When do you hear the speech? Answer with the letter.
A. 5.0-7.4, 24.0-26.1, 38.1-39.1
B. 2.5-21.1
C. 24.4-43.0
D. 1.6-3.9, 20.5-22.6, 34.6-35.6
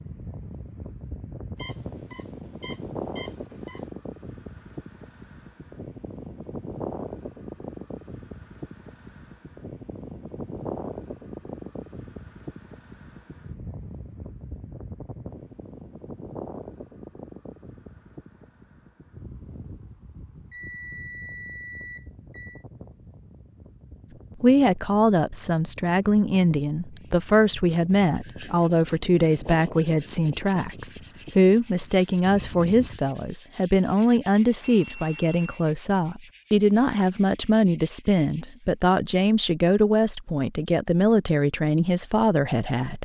C.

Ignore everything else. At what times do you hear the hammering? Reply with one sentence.
You can't hear the hammering here.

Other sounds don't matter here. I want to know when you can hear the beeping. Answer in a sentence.
You can hear the beeping from 1.6 to 3.9 s, from 20.5 to 22.6 s and from 34.6 to 35.6 s.